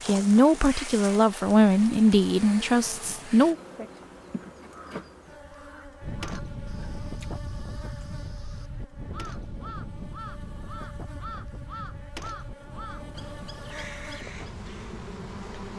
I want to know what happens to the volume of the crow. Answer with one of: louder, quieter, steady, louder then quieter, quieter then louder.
louder.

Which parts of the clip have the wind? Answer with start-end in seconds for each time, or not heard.
6.0-15.7.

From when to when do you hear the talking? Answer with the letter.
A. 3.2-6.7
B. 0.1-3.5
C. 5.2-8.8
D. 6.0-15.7
B.